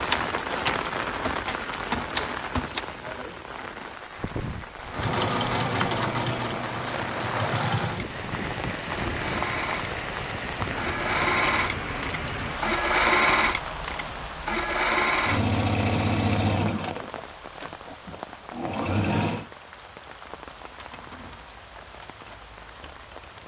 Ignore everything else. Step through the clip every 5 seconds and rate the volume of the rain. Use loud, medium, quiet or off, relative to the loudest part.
loud, loud, loud, medium, quiet.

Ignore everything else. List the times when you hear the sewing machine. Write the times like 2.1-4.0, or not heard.
4.9-19.4.